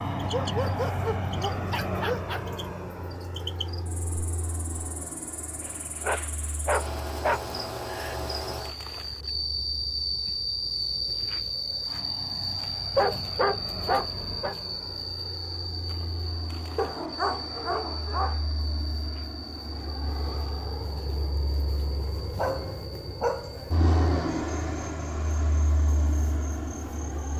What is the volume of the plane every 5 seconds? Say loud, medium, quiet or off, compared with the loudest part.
loud, quiet, medium, medium, loud, loud.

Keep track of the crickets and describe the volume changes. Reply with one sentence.
The volume of the crickets goes up, then down.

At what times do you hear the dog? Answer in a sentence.
The dog can be heard from 0.2 to 2.5 s, from 5.6 to 7.5 s, from 12.9 to 14.6 s, from 16.8 to 18.4 s and from 22.4 to 23.6 s.